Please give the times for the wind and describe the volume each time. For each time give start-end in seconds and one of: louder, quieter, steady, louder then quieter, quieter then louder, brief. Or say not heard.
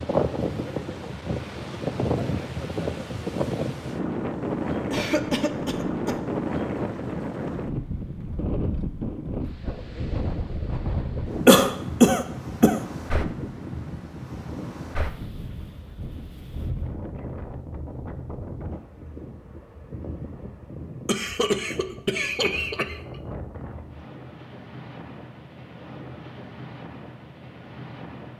0.0-28.3 quieter.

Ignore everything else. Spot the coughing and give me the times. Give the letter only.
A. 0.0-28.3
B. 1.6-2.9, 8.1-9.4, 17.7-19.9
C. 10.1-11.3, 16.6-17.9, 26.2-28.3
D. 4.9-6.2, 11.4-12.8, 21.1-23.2
D.